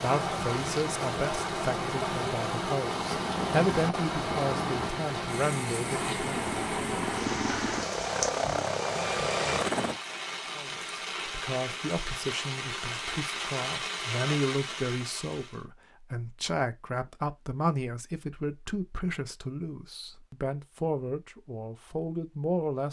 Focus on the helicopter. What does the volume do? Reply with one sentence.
The volume of the helicopter goes up.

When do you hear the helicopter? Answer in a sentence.
The helicopter can be heard from 2.8 to 10.0 s.